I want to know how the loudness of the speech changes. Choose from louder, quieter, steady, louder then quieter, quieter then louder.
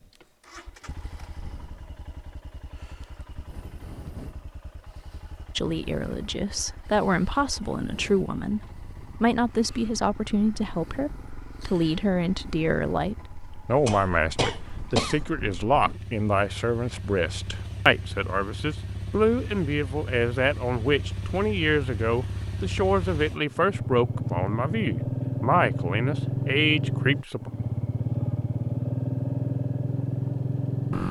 steady.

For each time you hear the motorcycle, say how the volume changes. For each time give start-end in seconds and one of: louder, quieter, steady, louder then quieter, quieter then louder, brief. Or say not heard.
0.0-31.0 louder.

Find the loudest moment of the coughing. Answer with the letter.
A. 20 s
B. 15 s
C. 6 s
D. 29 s
B.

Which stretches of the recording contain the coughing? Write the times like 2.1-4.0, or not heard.
13.8-15.2.